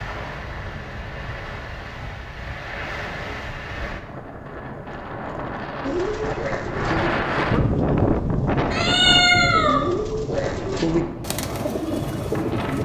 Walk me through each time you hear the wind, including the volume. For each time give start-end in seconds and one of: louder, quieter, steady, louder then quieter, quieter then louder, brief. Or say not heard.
0.0-12.7 louder then quieter.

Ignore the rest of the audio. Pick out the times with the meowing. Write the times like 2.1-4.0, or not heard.
8.7-9.8.